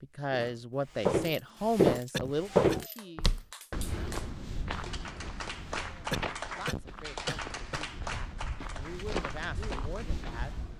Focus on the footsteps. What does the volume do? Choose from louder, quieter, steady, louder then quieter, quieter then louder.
quieter then louder.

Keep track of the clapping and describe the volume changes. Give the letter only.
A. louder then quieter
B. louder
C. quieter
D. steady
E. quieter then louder
A.